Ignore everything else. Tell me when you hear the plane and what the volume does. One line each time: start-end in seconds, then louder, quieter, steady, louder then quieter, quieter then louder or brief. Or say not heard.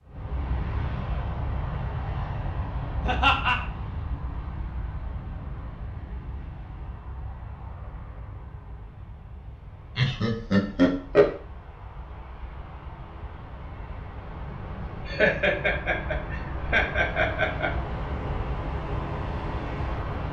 0.1-20.2 quieter then louder.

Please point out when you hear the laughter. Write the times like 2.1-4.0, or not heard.
3.0-3.5, 9.9-11.3, 15.1-17.7.